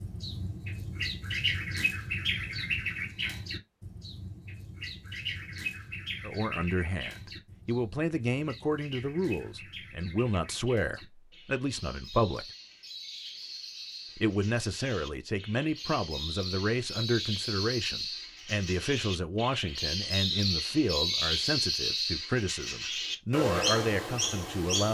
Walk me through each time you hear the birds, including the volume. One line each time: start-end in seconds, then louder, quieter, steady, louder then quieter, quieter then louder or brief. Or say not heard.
0.0-24.8 quieter then louder.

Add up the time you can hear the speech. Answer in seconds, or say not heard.
17 s.